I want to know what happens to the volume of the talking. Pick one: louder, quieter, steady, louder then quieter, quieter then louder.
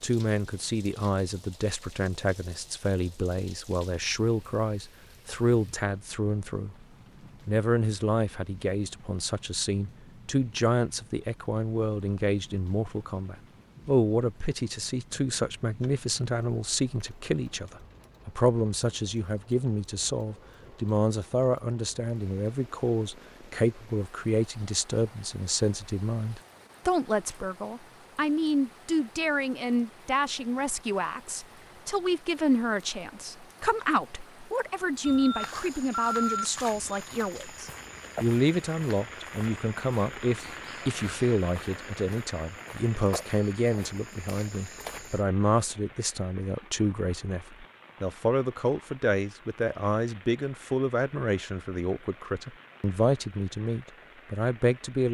steady.